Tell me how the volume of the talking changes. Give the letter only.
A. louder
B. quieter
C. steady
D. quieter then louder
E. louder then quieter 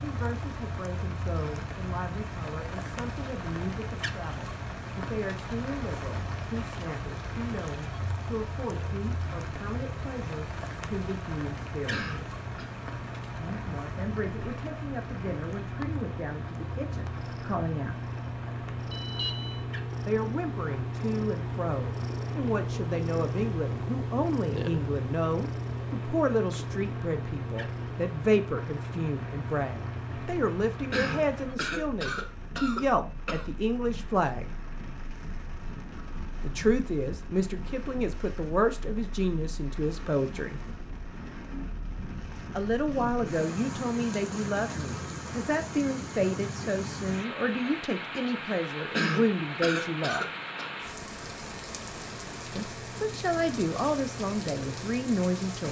A.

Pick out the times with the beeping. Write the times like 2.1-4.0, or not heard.
18.9-19.6.